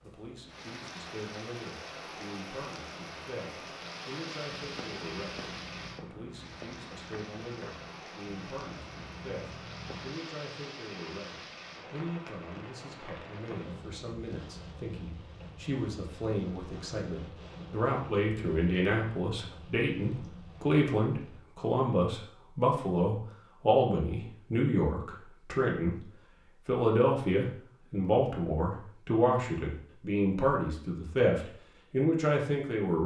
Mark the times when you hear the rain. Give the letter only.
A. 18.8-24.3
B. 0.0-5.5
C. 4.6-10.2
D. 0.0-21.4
D.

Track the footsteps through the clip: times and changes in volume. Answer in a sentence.
You can hear the footsteps from 4.6 to 10.2 s, at a steady volume.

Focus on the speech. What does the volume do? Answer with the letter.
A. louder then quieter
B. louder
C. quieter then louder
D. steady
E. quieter
B.